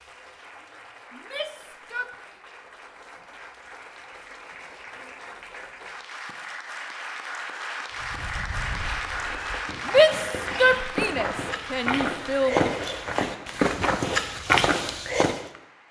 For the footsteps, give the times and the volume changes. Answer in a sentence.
The footsteps can be heard from 8.0 to 15.4 s, getting louder.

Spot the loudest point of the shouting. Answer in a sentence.
The volume of the shouting peaks at 10 seconds.